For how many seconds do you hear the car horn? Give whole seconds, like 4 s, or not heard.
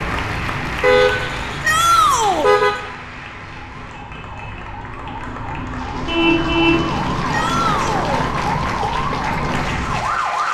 3 s.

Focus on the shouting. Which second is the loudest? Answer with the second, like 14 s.
2 s.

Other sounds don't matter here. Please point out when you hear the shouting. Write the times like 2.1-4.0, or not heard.
1.6-2.5, 7.3-8.3.